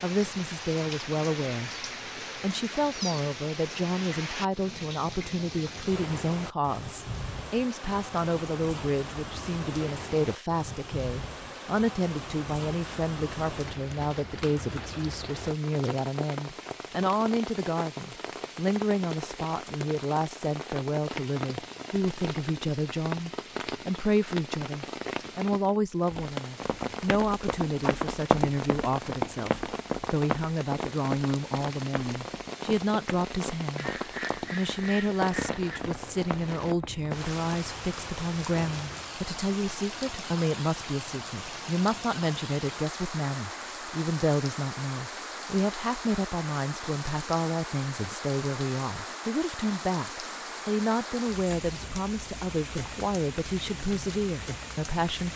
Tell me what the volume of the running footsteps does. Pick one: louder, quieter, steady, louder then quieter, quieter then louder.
quieter.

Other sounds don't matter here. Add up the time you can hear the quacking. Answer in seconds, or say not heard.
2 s.